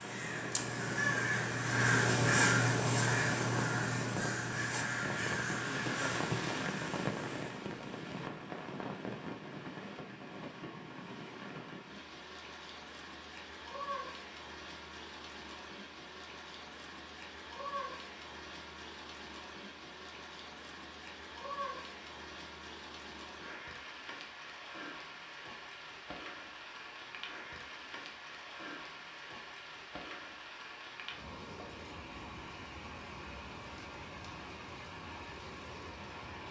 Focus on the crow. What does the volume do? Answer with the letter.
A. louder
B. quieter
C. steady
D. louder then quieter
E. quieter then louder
D.